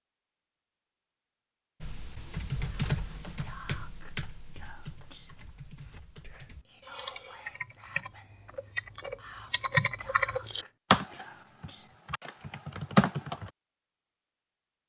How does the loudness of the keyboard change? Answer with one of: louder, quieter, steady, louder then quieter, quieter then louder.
quieter then louder.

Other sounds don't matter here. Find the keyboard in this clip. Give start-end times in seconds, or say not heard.
1.8-13.5.